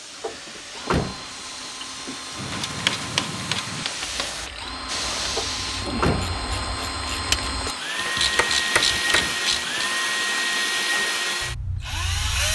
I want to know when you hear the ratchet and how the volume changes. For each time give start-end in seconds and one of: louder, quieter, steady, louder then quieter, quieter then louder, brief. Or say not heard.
2.3-9.9 quieter then louder.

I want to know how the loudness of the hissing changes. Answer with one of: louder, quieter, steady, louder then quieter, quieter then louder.
louder.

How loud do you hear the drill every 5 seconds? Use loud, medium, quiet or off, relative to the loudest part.
quiet, loud, loud.